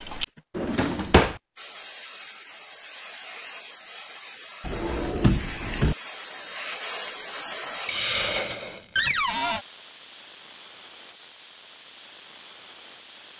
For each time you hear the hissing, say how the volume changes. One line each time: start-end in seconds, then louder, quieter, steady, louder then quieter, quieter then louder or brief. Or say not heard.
0.0-13.3 louder then quieter.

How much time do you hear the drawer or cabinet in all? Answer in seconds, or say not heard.
3 s.